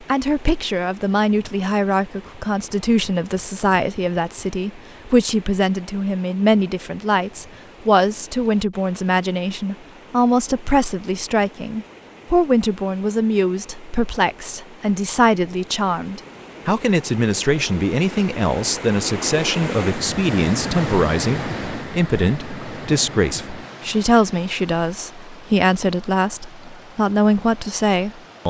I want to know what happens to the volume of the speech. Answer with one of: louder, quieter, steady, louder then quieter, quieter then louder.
steady.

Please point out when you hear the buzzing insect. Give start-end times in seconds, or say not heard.
not heard.